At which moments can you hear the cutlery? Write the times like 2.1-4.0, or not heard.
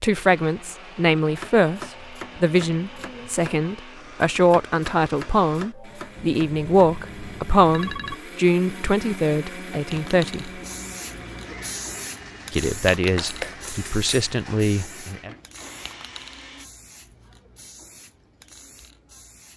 13.2-14.7.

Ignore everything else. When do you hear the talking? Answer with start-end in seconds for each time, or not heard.
0.0-10.6, 12.5-15.3.